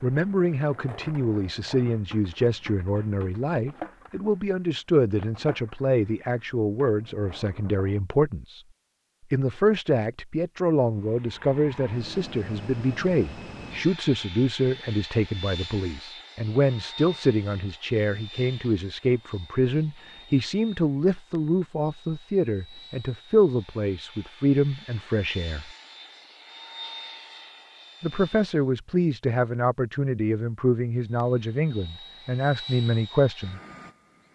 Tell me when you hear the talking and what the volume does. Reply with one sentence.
The talking can be heard from 0.0 to 8.6 s, at a steady volume; from 9.3 to 25.7 s, at a steady volume; and from 28.0 to 33.6 s, at a steady volume.